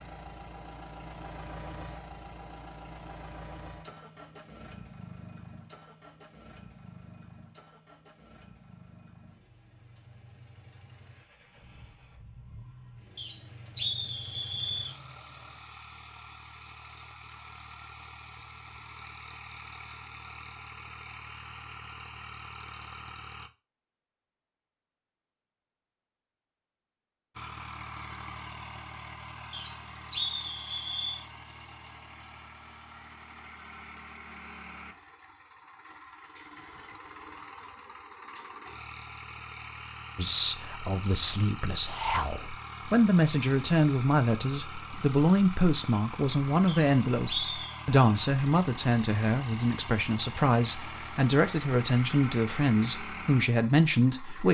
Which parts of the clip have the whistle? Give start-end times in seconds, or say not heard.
13.2-14.9, 29.5-31.2, 46.6-47.8.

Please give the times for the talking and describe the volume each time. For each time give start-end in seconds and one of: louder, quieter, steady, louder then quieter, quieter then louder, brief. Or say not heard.
40.1-54.4 steady.